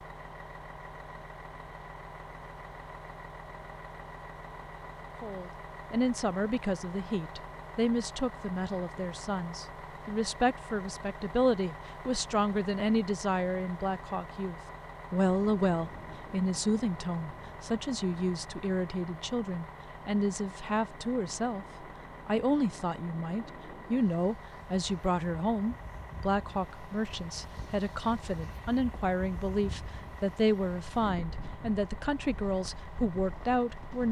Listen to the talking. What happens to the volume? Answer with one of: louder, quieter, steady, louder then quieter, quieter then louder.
steady.